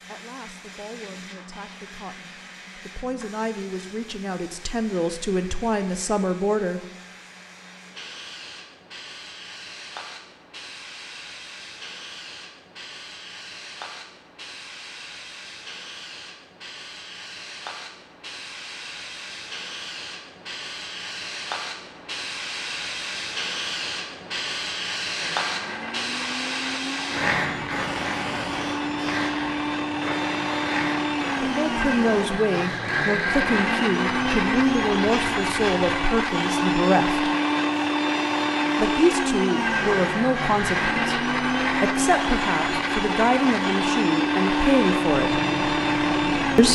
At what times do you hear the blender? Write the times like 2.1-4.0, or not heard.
25.1-46.7.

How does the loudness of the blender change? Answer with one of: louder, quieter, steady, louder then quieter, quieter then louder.
louder.